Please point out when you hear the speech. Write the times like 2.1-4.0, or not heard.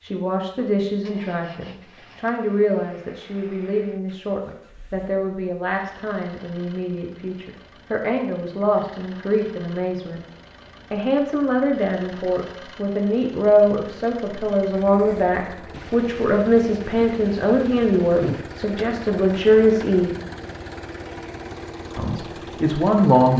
0.0-10.2, 10.9-20.1, 21.9-23.3.